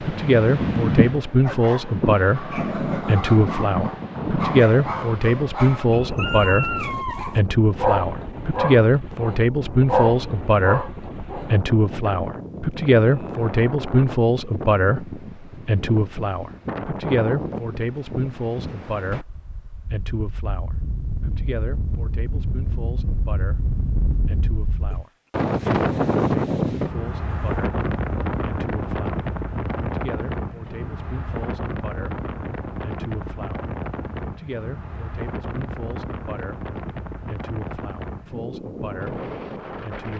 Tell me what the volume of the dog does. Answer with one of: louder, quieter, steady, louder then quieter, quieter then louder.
louder.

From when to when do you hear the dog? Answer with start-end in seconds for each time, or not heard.
1.2-11.5.